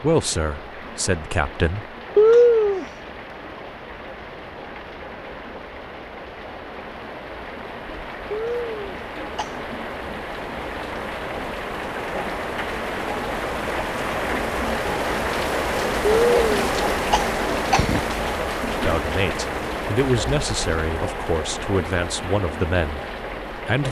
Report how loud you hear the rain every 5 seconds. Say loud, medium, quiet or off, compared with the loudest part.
quiet, medium, loud, loud, medium.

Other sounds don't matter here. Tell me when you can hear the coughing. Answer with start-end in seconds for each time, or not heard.
2.1-2.9, 8.3-9.6, 16.1-18.0.